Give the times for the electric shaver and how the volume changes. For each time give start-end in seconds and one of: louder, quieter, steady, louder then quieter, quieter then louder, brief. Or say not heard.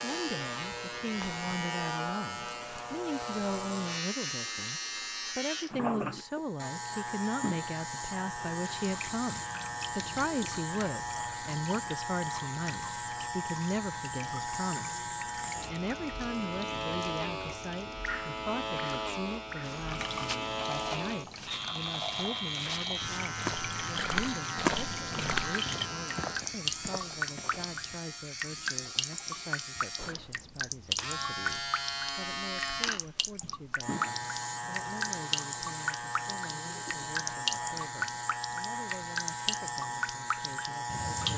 0.0-41.3 steady.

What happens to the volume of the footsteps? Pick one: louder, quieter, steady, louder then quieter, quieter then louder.
louder then quieter.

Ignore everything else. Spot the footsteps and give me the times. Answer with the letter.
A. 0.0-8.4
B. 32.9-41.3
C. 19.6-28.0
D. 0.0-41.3
C.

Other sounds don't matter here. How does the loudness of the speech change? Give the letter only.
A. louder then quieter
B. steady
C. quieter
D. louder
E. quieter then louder
C.